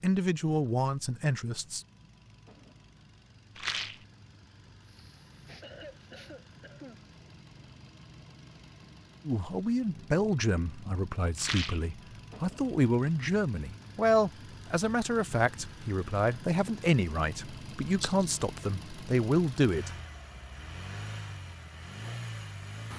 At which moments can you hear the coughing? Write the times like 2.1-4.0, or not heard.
4.8-7.0.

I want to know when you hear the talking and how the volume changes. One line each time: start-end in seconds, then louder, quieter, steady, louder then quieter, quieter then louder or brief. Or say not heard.
0.0-1.8 brief
9.2-19.9 steady.